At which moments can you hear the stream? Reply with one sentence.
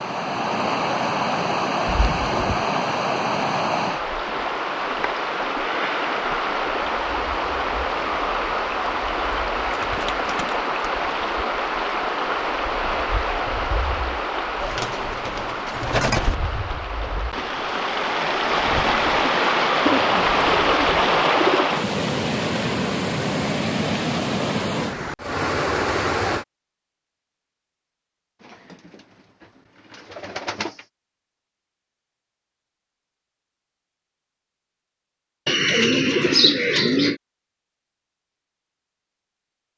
You can hear the stream from 0.0 to 26.4 s.